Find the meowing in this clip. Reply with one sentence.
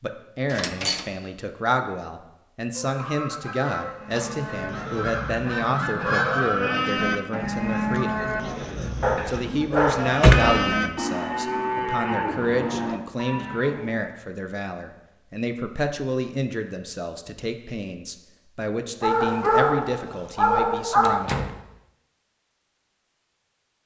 The meowing can't be heard in this clip.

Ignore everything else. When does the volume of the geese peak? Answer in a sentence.
The loudest moment of the geese is at 6 seconds.